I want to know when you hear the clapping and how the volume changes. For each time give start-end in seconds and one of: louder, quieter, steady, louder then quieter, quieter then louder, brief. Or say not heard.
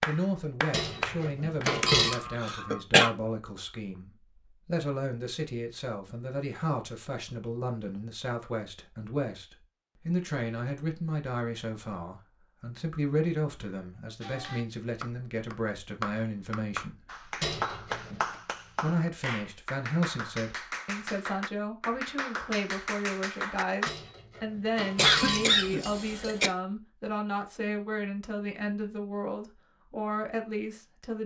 0.0-1.9 brief
14.2-23.9 steady.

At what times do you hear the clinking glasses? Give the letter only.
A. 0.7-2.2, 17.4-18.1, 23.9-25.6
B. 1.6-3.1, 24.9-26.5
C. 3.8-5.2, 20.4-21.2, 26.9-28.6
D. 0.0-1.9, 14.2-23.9
A.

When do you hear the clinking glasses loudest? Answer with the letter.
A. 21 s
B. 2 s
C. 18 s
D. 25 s
B.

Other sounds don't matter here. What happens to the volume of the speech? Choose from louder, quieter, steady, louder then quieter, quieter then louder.
steady.